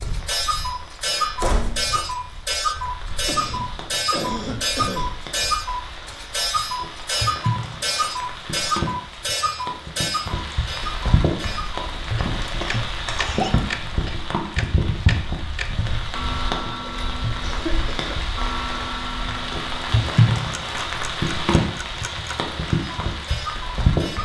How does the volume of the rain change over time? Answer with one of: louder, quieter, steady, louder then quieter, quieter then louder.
louder.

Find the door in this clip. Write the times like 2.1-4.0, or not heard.
1.4-2.0.